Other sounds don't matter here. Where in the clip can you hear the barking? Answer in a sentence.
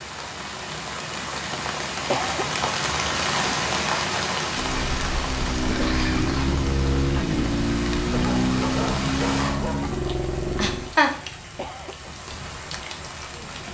You can hear the barking from 8.1 to 10.2 s.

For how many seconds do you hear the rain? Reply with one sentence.
You can hear the rain for 14 seconds altogether.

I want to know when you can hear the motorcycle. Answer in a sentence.
The motorcycle can be heard from 4.5 to 10.9 s.